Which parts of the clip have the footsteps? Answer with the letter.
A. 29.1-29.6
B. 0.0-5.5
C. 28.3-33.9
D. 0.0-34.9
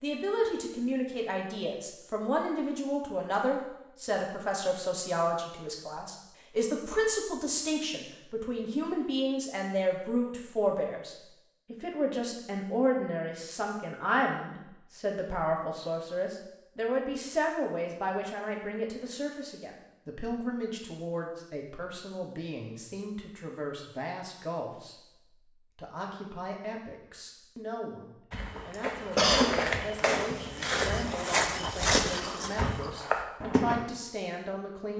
C.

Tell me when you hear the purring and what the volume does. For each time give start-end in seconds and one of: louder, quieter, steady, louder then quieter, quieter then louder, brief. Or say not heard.
not heard.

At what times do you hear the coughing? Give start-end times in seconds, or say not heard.
29.1-29.6.